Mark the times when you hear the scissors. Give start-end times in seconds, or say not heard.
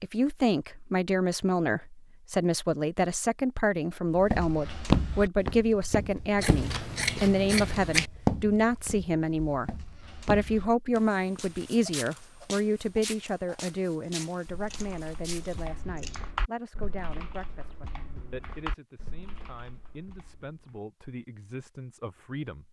6.3-8.1, 14.0-16.3.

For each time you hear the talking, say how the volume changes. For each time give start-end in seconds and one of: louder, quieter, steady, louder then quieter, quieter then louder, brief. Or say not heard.
0.0-22.6 quieter.